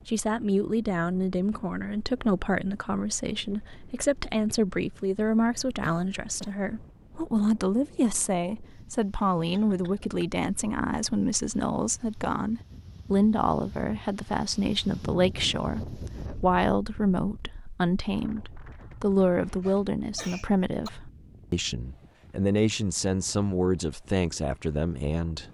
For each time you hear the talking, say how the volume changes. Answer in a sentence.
You can hear the talking from 0.1 to 25.4 s, at a steady volume.